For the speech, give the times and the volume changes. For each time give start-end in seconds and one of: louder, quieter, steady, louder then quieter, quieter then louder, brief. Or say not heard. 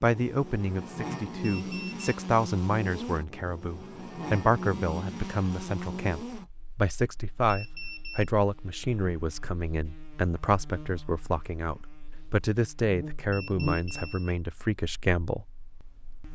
0.0-16.2 steady.